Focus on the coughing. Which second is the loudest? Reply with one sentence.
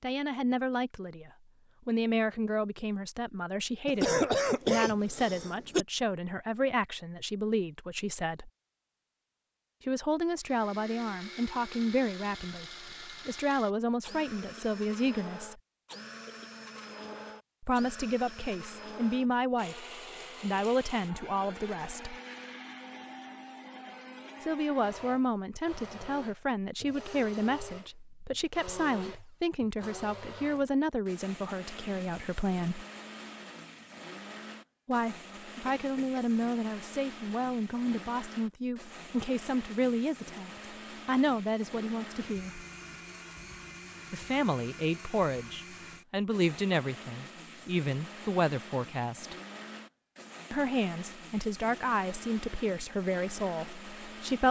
The loudest moment of the coughing is at 4 seconds.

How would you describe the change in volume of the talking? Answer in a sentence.
The volume of the talking stays about the same.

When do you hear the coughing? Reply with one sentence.
The coughing can be heard from 3.9 to 5.8 s and from 35.6 to 36.4 s.